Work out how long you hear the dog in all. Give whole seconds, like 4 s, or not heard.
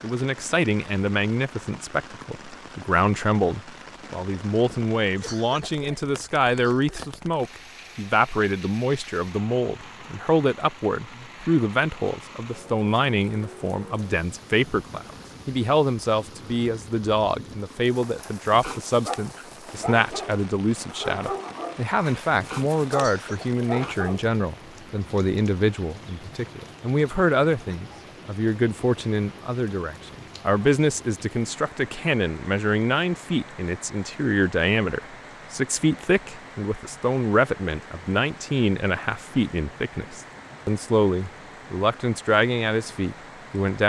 6 s.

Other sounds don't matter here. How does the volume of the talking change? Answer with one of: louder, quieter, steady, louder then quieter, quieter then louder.
steady.